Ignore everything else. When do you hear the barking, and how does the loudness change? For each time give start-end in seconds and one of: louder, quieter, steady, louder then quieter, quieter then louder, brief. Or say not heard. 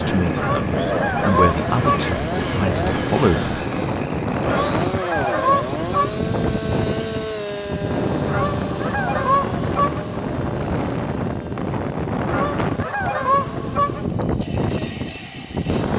not heard.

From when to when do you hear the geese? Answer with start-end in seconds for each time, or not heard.
0.3-2.1, 4.5-6.2, 8.2-10.2, 12.2-14.1.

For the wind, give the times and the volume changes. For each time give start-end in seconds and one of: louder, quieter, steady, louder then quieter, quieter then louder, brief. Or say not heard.
0.0-15.9 steady.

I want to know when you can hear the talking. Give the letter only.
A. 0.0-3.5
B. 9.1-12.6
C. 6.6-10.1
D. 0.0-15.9
A.